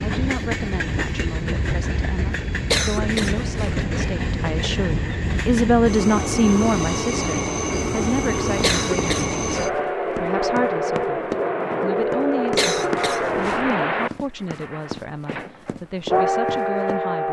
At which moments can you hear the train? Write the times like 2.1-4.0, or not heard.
0.0-17.2.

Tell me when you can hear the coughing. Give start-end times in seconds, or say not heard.
2.7-3.9, 8.6-9.8, 12.6-13.7.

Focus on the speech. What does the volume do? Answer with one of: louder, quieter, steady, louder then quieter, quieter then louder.
louder then quieter.